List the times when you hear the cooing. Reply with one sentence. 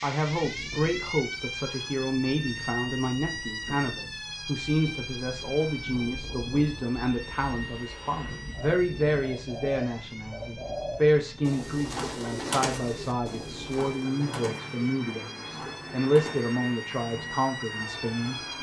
The cooing can be heard from 8.5 to 17.4 s.